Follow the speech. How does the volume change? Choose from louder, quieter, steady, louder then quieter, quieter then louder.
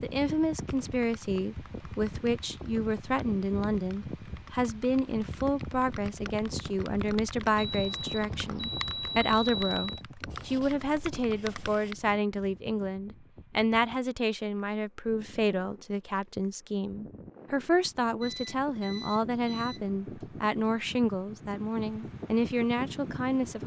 steady.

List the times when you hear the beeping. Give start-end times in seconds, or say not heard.
7.5-10.1, 18.2-19.8.